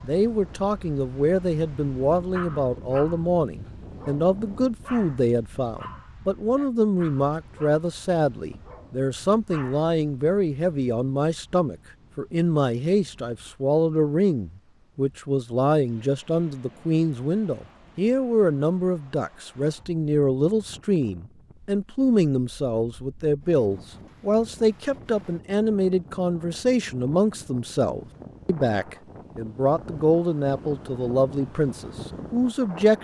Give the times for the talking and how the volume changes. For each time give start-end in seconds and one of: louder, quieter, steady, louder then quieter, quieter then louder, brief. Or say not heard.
0.0-32.9 steady.